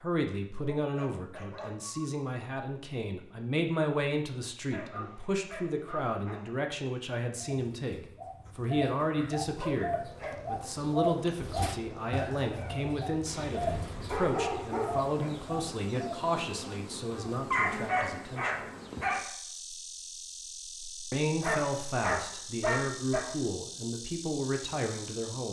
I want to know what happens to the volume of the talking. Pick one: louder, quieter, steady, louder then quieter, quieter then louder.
steady.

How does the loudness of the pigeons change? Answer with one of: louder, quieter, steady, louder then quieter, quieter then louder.
louder then quieter.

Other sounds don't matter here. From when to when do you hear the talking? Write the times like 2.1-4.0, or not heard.
0.0-18.6, 21.1-25.4.